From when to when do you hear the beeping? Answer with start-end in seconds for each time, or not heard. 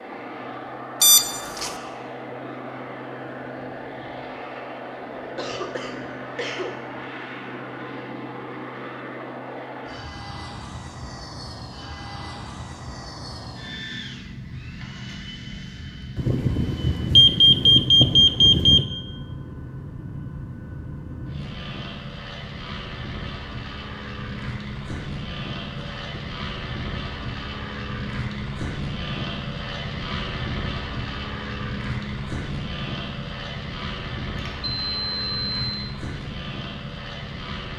1.0-1.7, 16.1-18.9, 34.4-35.8.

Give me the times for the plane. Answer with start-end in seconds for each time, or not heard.
0.0-37.7.